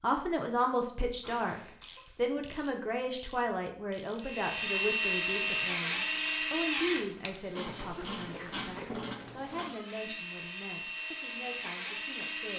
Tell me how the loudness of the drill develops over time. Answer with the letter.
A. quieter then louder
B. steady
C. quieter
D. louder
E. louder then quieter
A.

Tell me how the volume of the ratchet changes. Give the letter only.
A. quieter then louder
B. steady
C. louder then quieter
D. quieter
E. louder
E.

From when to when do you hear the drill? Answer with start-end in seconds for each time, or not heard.
4.2-12.5.